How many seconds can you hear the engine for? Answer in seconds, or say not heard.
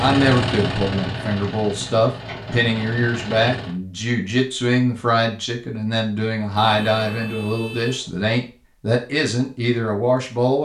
4 s.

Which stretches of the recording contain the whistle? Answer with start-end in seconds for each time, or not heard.
not heard.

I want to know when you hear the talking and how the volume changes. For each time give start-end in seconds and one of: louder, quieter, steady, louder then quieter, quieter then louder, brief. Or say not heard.
0.0-10.6 steady.